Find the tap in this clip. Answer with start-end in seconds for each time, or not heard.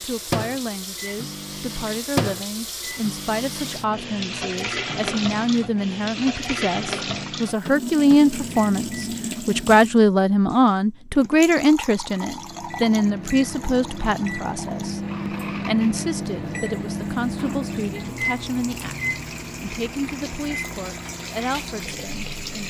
0.0-22.6.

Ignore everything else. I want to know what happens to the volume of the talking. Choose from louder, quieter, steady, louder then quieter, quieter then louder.
louder then quieter.